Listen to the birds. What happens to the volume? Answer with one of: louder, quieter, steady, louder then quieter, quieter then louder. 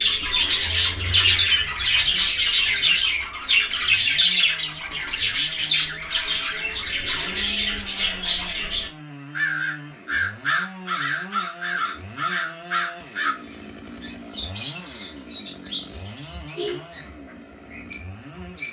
quieter.